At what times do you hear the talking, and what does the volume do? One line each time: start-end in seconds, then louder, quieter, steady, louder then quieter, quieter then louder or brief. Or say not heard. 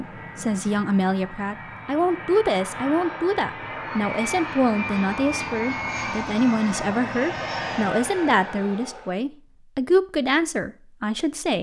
0.0-11.5 steady.